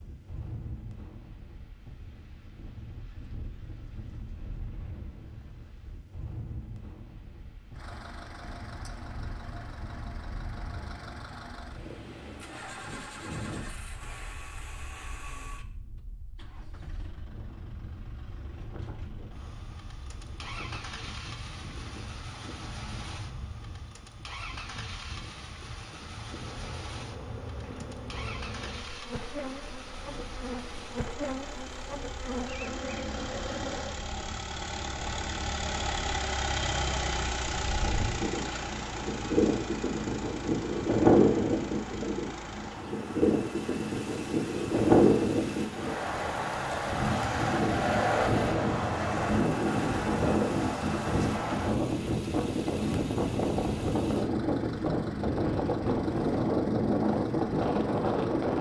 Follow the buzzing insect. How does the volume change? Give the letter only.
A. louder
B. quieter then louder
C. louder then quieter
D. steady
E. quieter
A.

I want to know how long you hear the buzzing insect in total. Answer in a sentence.
The buzzing insect can be heard for 8 seconds in total.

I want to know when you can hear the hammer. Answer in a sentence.
The hammer can't be heard in this clip.